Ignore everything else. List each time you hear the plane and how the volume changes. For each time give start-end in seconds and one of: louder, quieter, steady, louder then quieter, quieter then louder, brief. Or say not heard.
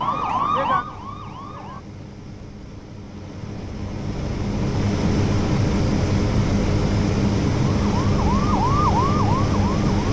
0.0-10.0 louder.